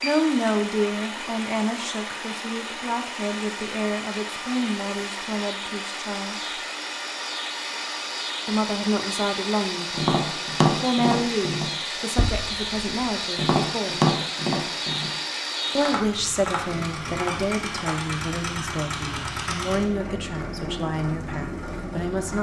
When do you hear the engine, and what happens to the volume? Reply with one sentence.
You can hear the engine from 0.0 to 22.3 s, at a steady volume.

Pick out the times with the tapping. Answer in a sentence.
The tapping can be heard from 9.9 to 18.1 s.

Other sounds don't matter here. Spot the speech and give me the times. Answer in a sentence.
You can hear the speech from 0.0 to 6.5 s, from 8.4 to 14.1 s and from 15.8 to 22.3 s.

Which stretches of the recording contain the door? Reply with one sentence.
The door can't be heard in this clip.